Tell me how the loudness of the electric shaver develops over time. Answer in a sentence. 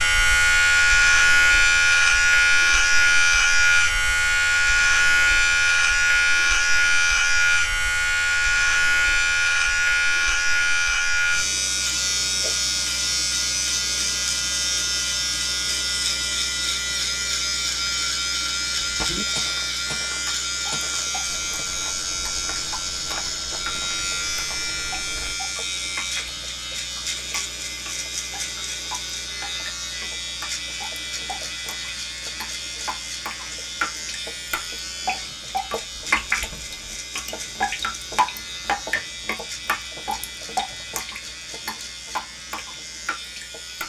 The volume of the electric shaver goes down.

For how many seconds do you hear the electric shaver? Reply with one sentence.
You can hear the electric shaver for 44 seconds altogether.